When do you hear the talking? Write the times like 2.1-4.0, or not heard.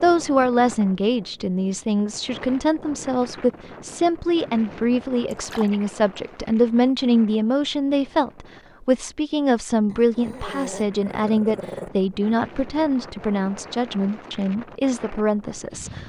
0.0-16.0.